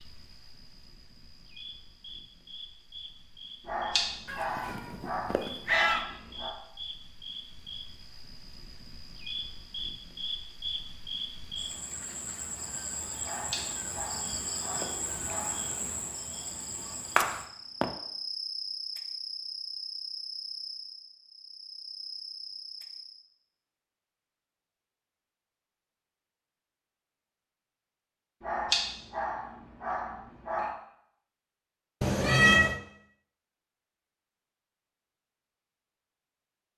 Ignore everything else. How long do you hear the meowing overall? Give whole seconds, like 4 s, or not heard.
3 s.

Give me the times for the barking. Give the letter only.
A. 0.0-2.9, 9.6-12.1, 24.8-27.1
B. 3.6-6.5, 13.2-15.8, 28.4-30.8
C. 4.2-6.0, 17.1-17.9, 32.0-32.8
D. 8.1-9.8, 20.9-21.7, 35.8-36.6
B.